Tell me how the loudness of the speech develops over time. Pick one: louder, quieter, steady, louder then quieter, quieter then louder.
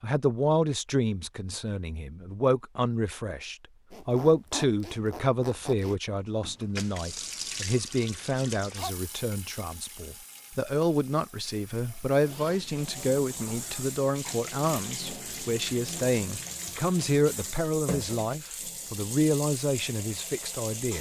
steady.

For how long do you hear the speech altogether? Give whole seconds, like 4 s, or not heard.
21 s.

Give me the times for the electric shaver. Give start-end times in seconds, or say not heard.
not heard.